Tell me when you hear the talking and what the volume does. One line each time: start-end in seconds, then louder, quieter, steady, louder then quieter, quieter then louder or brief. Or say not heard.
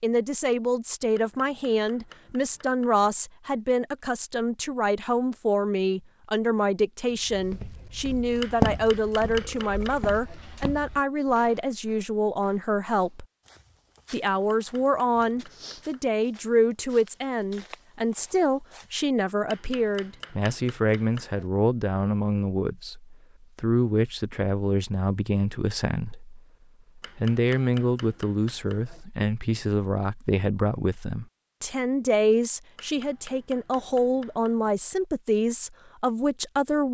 0.0-13.2 steady
14.1-36.8 steady.